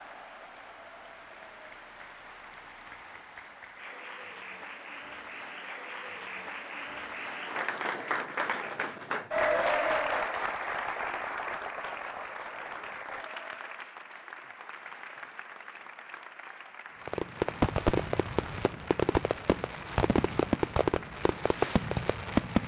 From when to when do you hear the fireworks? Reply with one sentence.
You can hear the fireworks from 17.1 to 22.6 s.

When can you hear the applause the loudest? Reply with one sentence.
The volume of the applause peaks at 10 seconds.